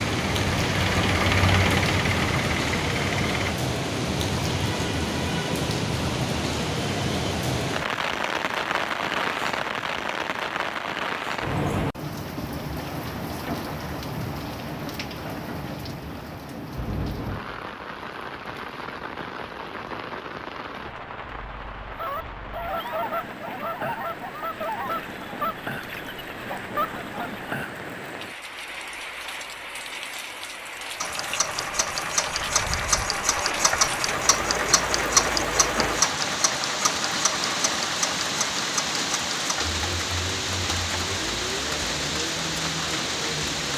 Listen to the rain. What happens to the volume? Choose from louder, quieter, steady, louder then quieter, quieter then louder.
quieter then louder.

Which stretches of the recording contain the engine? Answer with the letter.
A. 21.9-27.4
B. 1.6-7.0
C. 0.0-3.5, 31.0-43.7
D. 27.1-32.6
C.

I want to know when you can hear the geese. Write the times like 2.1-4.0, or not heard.
21.9-27.4.